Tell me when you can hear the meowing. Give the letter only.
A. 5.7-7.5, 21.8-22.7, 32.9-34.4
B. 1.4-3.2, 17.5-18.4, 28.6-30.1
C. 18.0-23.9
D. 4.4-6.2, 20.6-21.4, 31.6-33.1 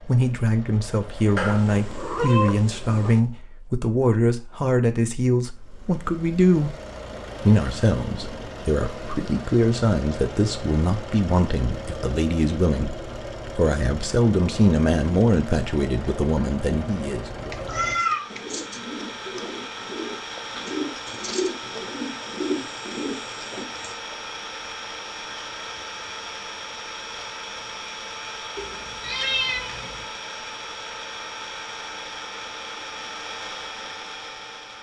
B.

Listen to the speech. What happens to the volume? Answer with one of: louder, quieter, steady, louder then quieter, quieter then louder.
steady.